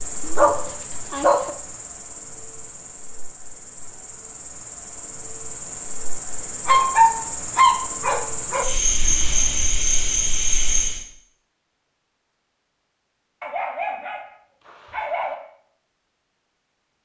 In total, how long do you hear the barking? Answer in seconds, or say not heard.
5 s.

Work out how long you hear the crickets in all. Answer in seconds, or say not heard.
11 s.